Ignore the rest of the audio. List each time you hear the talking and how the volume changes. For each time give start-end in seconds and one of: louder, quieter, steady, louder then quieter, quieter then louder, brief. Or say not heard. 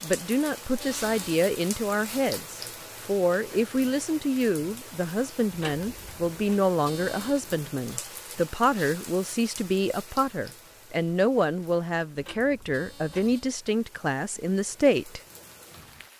0.0-15.2 steady.